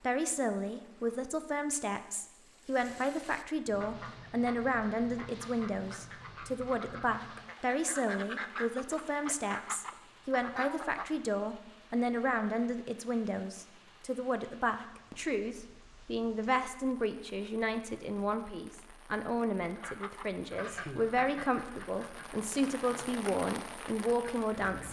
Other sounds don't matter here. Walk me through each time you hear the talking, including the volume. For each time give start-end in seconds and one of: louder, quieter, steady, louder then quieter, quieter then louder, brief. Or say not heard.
0.0-24.8 steady.